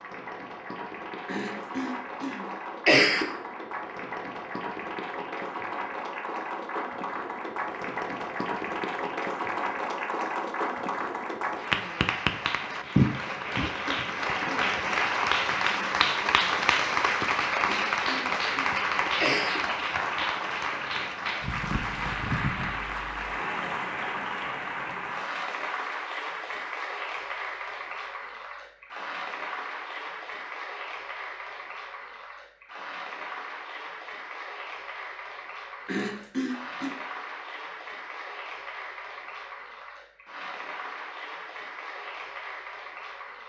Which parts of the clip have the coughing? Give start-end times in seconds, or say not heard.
1.2-3.2, 17.6-19.6, 35.9-37.0.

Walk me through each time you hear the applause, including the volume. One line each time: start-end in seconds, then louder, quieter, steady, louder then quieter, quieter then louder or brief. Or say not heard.
0.0-43.4 louder then quieter.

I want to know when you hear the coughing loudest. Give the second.
3 s.